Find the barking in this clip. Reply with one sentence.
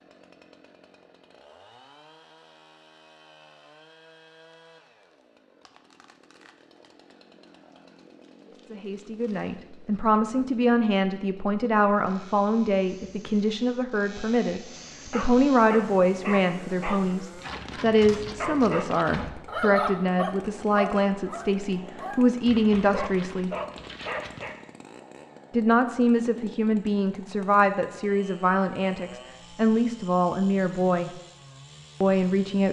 You can hear the barking from 15.1 to 24.6 s.